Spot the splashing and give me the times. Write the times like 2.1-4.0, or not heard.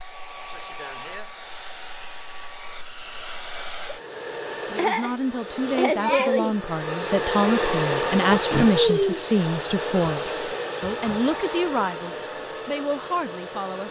not heard.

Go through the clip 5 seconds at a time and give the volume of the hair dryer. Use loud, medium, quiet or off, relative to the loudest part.
medium, loud, medium.